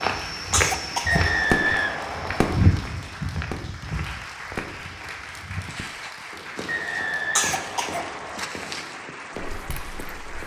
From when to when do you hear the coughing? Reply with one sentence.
The coughing can be heard from 0.5 to 1.2 s and from 7.3 to 8.1 s.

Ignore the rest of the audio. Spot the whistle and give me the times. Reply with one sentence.
The whistle can be heard from 1.1 to 2.7 s and from 6.7 to 8.4 s.